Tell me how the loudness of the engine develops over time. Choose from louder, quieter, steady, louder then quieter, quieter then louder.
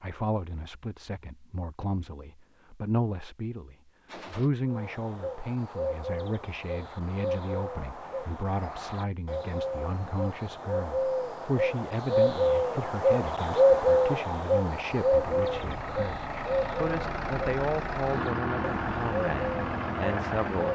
louder.